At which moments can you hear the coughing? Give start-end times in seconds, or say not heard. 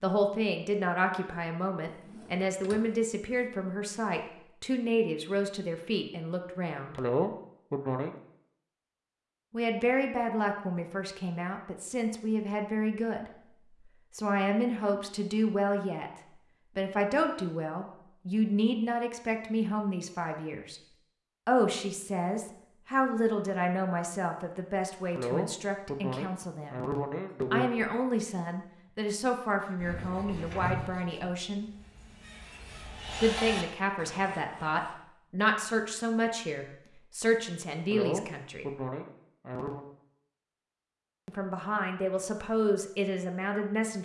7.0-8.2, 25.1-27.6, 37.9-39.9.